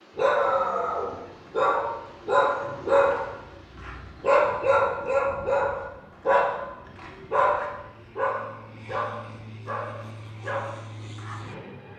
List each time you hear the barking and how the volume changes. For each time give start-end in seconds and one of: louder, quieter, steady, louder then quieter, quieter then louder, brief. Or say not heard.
0.1-11.6 quieter.